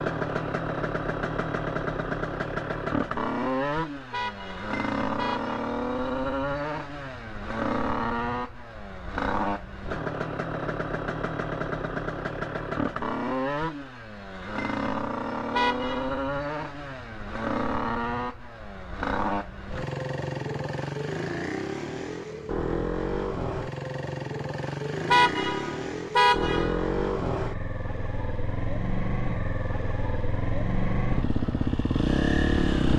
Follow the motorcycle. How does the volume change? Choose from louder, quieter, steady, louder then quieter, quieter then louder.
steady.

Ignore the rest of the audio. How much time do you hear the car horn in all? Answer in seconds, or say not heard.
4 s.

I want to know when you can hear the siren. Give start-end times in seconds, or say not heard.
not heard.